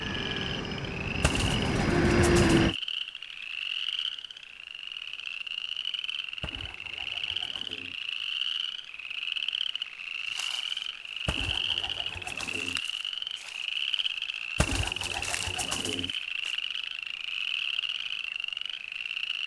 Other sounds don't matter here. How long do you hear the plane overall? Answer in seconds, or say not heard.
3 s.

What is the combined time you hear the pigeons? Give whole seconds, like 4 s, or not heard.
6 s.